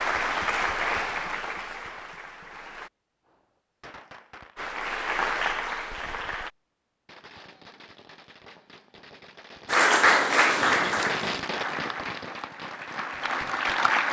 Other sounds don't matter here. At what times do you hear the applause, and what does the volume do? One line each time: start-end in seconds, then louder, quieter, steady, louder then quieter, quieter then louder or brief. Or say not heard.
0.0-2.9 brief
4.5-6.5 brief
9.7-14.0 quieter then louder.